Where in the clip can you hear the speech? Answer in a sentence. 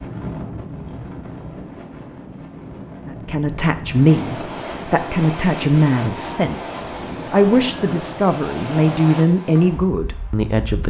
The speech can be heard from 3.0 to 10.8 s.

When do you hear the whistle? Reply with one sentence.
The whistle can't be heard in this clip.